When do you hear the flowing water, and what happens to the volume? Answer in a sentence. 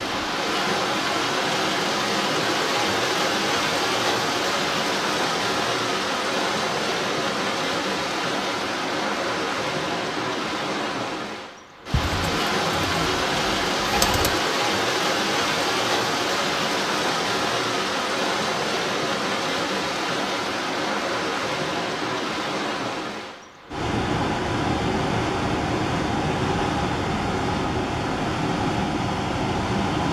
You can hear the flowing water from 0.0 to 30.0 s, at a steady volume.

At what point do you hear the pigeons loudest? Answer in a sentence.
The volume of the pigeons peaks at 14 seconds.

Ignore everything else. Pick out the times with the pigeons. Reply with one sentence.
You can hear the pigeons from 11.9 to 14.4 s.